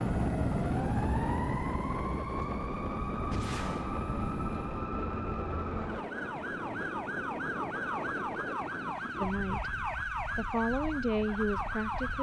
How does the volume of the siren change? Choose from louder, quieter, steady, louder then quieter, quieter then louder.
steady.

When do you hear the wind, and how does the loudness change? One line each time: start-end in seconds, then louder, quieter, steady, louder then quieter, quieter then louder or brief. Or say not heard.
0.0-12.1 quieter.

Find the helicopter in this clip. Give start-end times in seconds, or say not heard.
0.0-4.8.